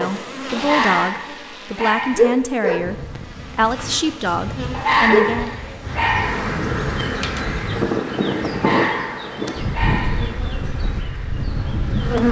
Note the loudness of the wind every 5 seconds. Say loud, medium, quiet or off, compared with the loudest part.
medium, loud, loud.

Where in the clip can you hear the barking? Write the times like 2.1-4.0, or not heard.
0.6-2.4, 4.7-6.5, 8.5-10.3.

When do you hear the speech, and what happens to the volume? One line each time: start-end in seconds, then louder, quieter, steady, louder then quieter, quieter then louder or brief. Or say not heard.
0.0-5.5 steady.